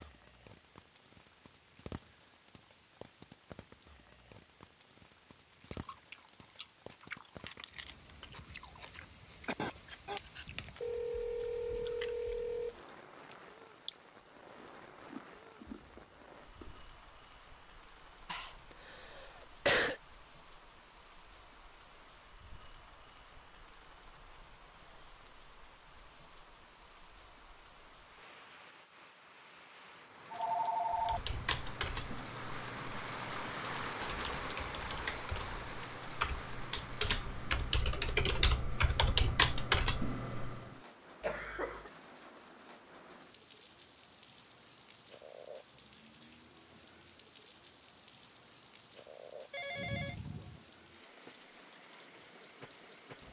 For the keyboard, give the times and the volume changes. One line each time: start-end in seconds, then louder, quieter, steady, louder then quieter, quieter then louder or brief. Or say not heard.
30.9-40.7 quieter then louder.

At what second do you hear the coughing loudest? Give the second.
20 s.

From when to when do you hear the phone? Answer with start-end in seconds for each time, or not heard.
10.8-12.8, 30.3-31.2, 49.5-50.6.